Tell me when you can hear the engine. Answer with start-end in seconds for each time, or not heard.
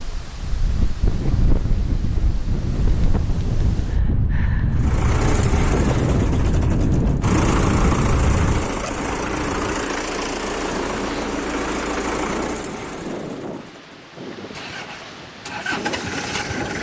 4.7-16.7.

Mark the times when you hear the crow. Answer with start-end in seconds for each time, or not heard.
not heard.